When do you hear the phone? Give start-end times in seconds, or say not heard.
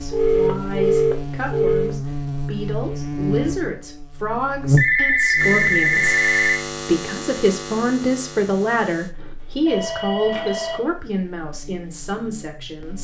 0.1-1.9, 4.8-6.6, 9.2-10.8.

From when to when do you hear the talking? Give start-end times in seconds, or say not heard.
0.0-12.9.